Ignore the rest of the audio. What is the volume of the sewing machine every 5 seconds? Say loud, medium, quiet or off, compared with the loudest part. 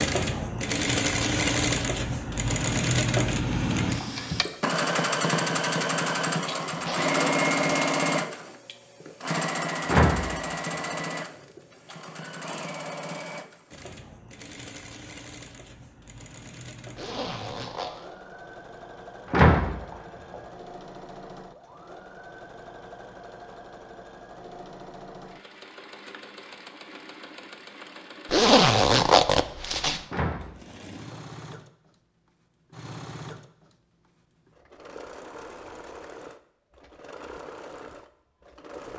loud, loud, medium, quiet, quiet, quiet, quiet, quiet.